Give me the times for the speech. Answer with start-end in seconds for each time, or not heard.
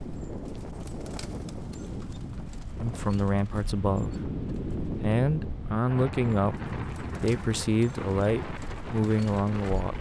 2.8-9.9.